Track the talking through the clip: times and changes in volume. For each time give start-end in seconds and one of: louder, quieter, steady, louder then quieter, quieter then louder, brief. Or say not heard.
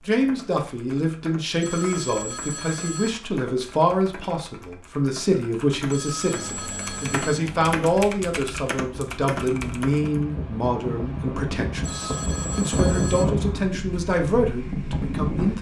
0.0-15.5 steady.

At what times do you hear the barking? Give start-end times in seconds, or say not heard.
not heard.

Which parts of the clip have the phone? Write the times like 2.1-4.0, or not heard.
1.6-3.1, 5.8-7.4, 11.8-13.2.